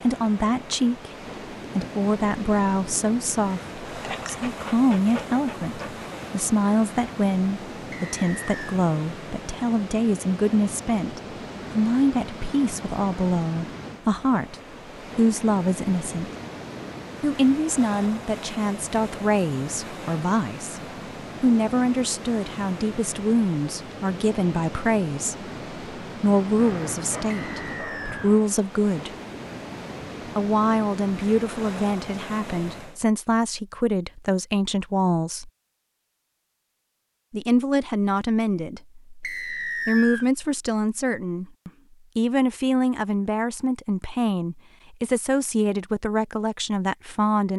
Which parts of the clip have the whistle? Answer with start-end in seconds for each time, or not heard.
7.9-8.8, 27.3-28.3, 39.2-40.2.